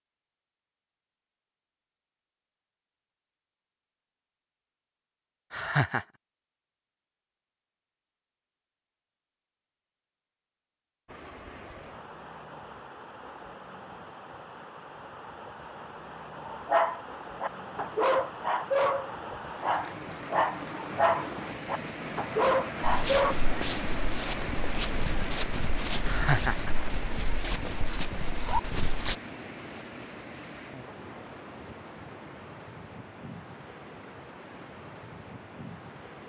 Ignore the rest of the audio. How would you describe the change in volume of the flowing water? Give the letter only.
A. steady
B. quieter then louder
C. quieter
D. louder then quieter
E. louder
D.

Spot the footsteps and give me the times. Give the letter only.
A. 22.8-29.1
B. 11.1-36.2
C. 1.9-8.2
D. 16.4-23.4
A.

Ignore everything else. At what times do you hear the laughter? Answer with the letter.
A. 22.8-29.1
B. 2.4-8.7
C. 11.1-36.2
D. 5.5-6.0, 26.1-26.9
D.